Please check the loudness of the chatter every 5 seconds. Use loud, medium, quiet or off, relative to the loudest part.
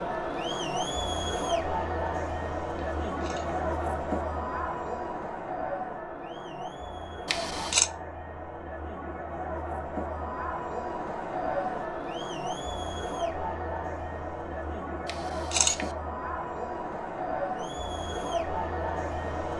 loud, medium, loud, loud.